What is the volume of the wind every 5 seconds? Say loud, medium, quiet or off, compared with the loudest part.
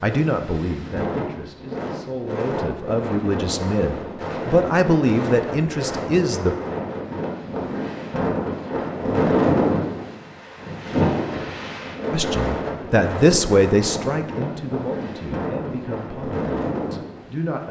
medium, loud, loud, medium.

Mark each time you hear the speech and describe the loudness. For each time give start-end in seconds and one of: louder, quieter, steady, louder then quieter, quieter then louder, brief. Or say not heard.
0.0-6.5 louder
12.1-17.6 quieter.